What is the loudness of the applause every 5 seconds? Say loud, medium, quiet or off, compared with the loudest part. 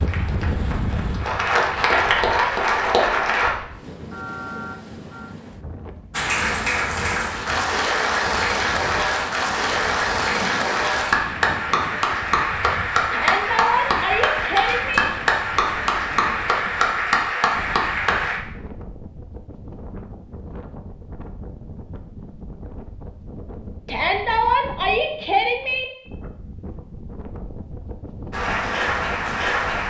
loud, loud, loud, loud, off, loud.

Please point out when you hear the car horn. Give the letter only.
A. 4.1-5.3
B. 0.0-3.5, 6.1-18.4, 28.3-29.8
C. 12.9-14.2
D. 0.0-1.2
A.